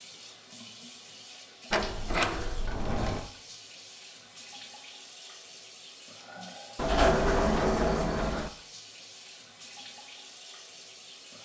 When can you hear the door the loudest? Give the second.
7 s.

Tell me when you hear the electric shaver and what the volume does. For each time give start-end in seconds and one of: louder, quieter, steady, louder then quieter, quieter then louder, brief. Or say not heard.
not heard.